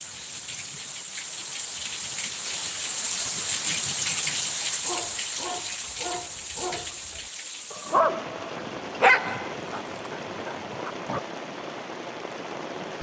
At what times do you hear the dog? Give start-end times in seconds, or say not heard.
4.8-11.2.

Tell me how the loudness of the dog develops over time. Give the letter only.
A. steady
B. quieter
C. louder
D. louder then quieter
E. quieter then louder
D.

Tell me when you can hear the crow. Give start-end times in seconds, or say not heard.
not heard.